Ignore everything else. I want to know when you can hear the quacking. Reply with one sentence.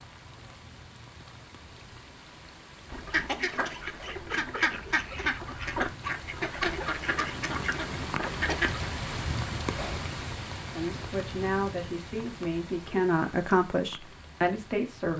The quacking can be heard from 2.9 to 8.9 s.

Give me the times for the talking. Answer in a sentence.
The talking can be heard from 10.8 to 15.1 s.